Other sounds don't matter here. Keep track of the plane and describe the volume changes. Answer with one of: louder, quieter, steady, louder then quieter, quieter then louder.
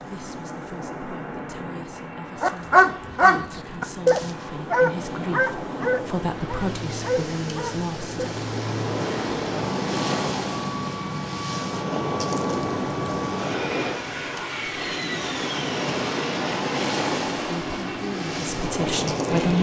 louder.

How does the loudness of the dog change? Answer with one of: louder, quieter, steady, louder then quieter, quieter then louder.
quieter.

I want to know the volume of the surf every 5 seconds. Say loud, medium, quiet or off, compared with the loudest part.
medium, loud, loud, loud.